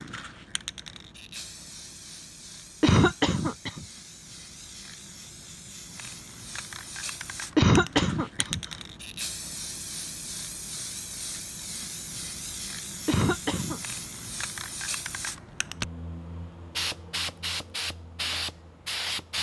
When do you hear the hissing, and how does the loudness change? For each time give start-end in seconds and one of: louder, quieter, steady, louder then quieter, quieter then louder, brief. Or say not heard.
0.0-19.3 louder.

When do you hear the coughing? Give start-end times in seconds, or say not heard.
2.8-3.9, 7.5-8.6, 13.1-13.8.